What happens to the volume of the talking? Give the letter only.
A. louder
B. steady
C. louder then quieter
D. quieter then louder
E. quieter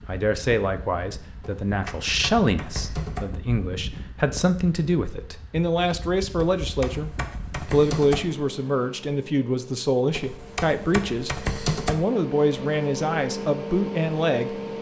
B.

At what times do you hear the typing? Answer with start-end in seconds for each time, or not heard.
1.4-3.2, 6.3-8.2, 10.2-11.9.